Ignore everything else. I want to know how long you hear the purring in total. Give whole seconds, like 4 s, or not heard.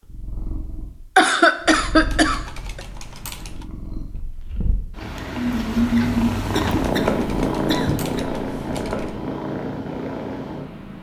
11 s.